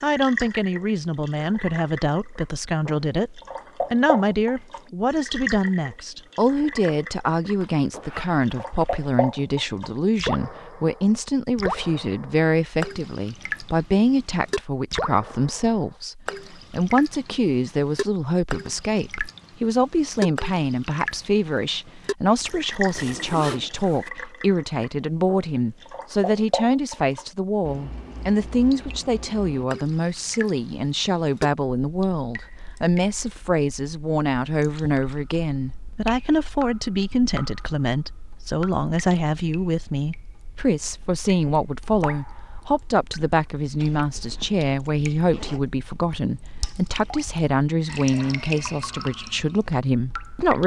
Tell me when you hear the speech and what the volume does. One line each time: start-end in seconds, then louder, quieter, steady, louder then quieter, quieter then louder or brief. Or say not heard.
0.0-50.6 steady.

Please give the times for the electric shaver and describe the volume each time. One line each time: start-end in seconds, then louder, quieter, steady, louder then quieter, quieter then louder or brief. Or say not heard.
not heard.